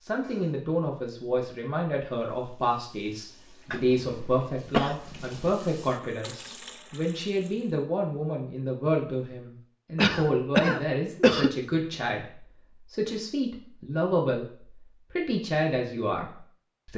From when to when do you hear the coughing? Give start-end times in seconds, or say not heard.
3.7-5.5, 9.9-11.5.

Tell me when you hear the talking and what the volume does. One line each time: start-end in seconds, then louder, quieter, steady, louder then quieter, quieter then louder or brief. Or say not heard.
0.0-16.9 steady.